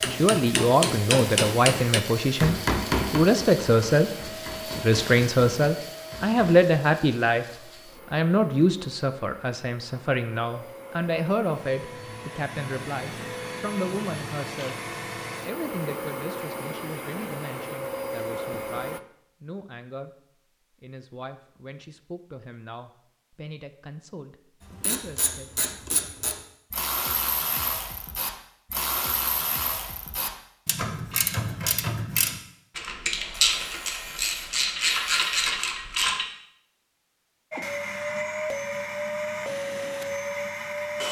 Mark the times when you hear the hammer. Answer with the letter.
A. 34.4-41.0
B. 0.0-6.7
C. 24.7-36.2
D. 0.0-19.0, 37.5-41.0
B.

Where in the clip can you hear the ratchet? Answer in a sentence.
You can hear the ratchet from 24.7 to 36.2 s.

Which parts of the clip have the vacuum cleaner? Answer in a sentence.
You can hear the vacuum cleaner from 0.0 to 19.0 s and from 37.5 to 41.0 s.